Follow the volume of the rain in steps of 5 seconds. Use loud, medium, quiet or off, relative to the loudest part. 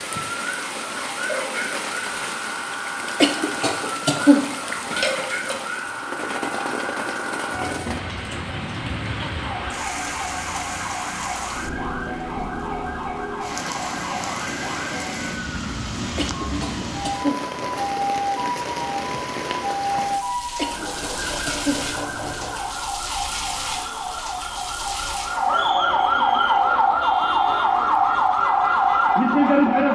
loud, loud, loud, loud, loud, medium.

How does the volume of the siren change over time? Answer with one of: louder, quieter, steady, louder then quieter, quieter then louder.
louder.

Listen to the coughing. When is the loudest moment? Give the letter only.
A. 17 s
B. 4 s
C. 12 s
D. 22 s
B.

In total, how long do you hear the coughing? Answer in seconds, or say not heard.
5 s.